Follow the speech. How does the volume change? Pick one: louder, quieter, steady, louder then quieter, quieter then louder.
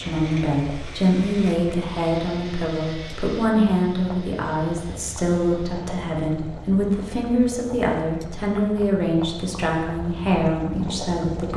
steady.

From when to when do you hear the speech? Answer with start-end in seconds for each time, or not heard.
0.0-11.5.